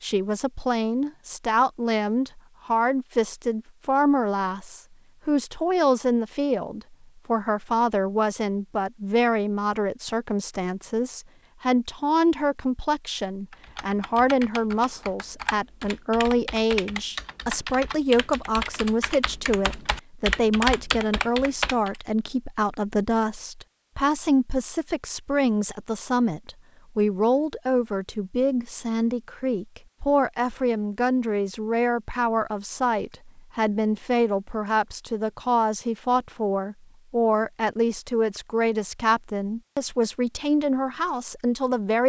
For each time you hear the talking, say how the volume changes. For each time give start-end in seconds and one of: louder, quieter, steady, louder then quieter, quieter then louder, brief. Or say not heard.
0.0-42.0 steady.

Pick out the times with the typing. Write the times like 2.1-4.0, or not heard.
13.5-22.0.